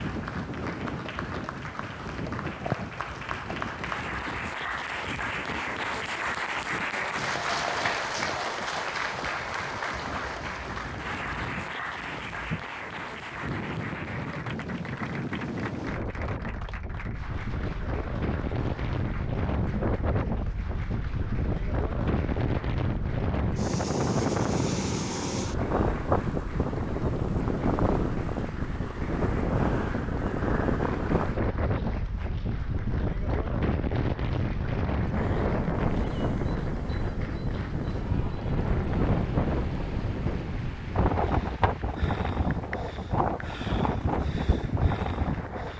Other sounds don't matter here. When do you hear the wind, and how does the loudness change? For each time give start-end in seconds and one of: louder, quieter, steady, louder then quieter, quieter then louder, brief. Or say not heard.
0.0-45.7 louder.